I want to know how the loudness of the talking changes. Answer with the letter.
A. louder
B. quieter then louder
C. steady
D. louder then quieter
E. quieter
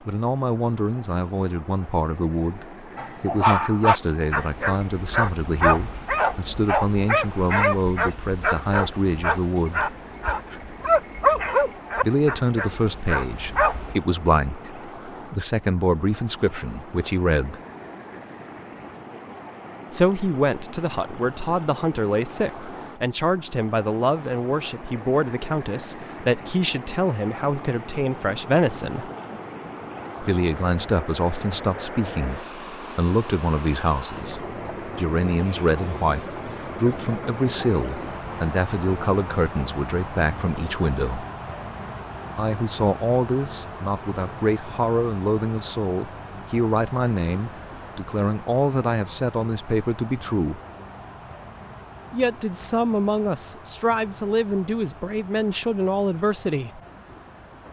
C.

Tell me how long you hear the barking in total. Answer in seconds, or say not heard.
11 s.